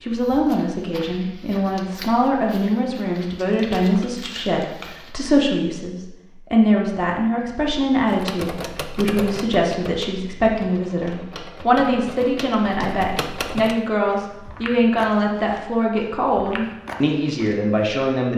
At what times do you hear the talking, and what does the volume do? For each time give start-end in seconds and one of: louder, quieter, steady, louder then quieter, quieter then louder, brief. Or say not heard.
0.0-18.3 steady.